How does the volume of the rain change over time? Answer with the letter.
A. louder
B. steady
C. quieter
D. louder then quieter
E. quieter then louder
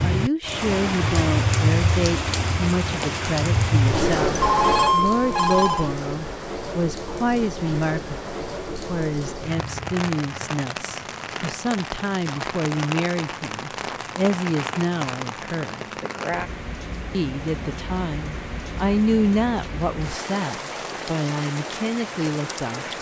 C.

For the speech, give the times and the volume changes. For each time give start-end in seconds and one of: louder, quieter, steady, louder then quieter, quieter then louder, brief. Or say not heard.
0.0-15.8 steady
17.1-22.9 louder then quieter.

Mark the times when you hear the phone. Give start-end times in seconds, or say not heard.
4.3-5.9.